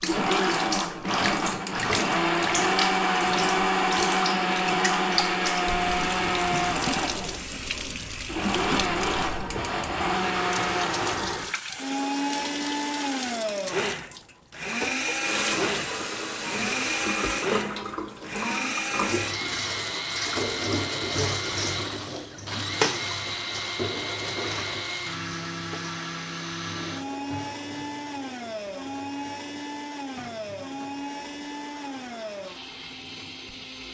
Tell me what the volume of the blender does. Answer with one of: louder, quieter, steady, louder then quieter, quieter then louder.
quieter.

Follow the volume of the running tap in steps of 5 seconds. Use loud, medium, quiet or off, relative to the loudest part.
loud, loud, loud, loud, loud, quiet, quiet.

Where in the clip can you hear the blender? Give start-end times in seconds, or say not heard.
0.0-33.8.